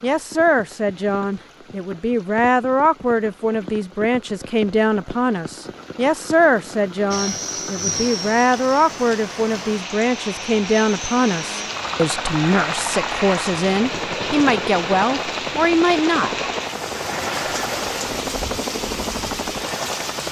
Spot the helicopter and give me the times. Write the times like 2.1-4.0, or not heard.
7.1-20.2.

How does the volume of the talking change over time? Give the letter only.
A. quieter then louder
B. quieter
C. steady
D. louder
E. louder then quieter
C.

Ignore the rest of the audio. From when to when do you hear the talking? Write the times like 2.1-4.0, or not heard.
0.0-16.4.